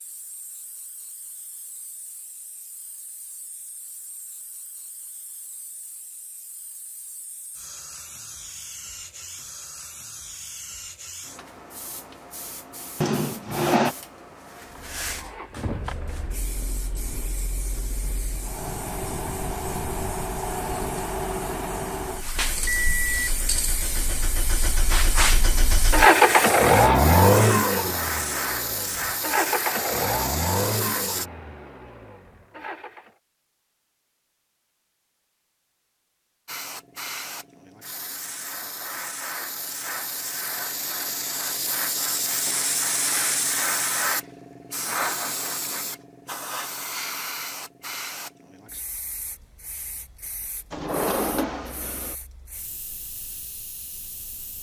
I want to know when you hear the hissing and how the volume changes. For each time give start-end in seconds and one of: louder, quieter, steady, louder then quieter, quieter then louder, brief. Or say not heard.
0.0-31.2 louder
36.5-54.5 louder then quieter.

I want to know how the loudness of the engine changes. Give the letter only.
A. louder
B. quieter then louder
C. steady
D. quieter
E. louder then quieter
E.